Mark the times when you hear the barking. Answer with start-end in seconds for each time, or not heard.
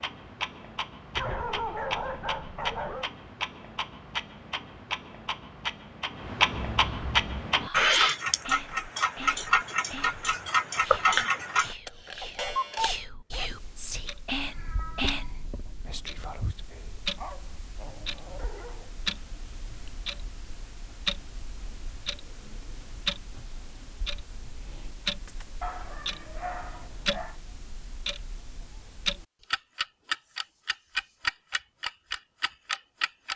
1.1-3.1, 12.2-13.5, 17.1-18.9, 25.6-27.4.